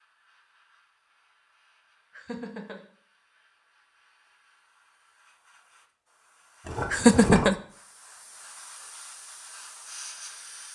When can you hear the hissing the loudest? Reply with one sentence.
The loudest moment of the hissing is at 10 seconds.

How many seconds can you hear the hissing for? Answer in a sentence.
You can hear the hissing for 11 seconds altogether.